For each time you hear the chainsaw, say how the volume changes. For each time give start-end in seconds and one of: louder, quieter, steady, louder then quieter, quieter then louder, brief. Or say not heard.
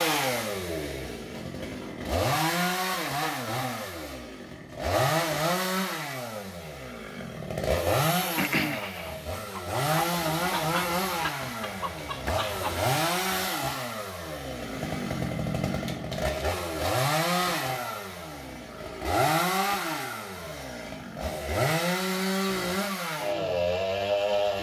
0.0-24.5 steady.